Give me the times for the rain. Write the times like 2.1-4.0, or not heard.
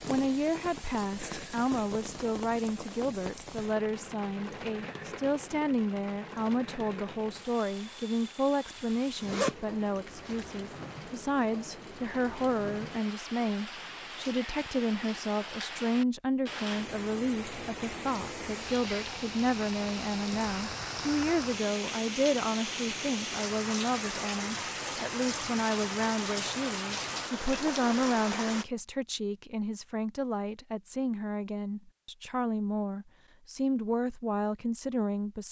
0.0-28.6.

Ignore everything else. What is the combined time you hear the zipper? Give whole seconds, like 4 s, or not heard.
2 s.